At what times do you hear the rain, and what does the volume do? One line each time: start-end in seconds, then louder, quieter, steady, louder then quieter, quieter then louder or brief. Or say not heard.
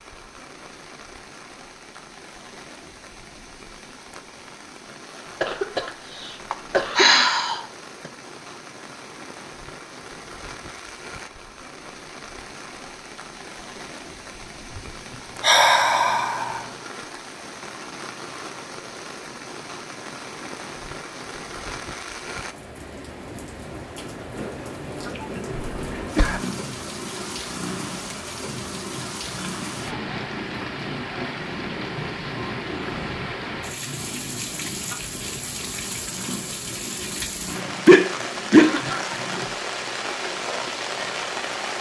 0.0-41.7 louder.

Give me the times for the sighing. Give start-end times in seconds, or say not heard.
6.5-7.7, 15.4-16.6, 37.9-38.8.